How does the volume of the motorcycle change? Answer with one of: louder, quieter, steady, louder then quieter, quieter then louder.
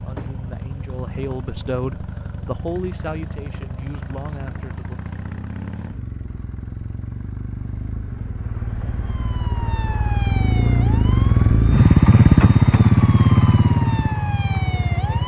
louder.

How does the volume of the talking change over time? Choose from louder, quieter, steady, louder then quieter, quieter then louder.
louder then quieter.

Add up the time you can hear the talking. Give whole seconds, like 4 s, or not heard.
5 s.